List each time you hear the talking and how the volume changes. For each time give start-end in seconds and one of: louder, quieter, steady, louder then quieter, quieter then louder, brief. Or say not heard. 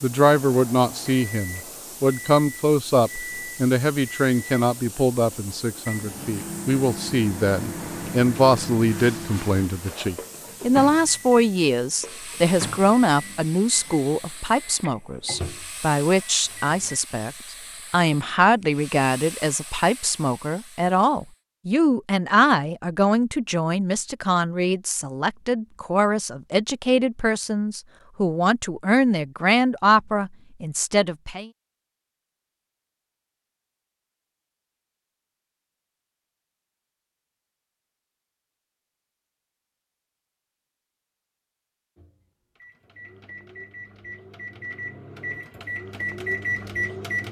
0.0-31.5 steady.